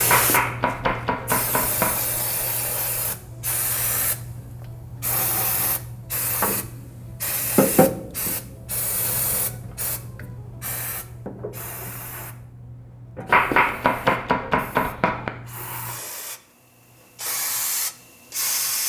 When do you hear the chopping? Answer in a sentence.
The chopping can be heard from 0.1 to 1.9 s and from 13.2 to 15.3 s.